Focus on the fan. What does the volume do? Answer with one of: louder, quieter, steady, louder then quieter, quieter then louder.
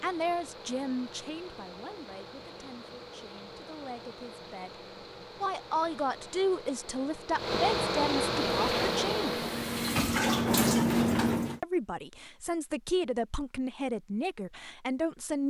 louder.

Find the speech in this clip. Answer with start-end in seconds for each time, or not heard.
0.0-4.8, 5.4-9.3, 11.6-15.4.